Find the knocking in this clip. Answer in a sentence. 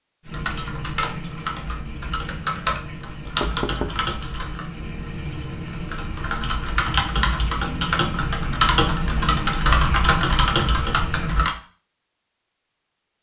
The knocking can be heard from 3.2 to 4.0 s.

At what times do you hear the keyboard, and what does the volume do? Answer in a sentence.
The keyboard can be heard from 0.2 to 11.6 s, getting louder.